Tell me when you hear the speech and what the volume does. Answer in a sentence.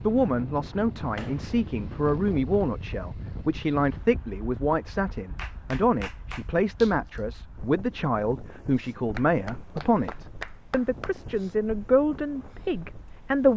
You can hear the speech from 0.0 to 13.5 s, at a steady volume.